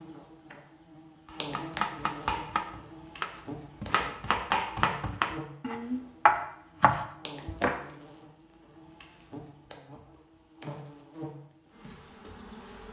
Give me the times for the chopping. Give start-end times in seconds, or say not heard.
1.2-7.8.